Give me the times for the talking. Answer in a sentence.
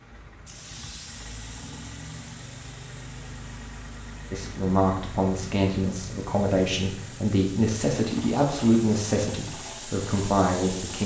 You can hear the talking from 4.3 to 11.0 s.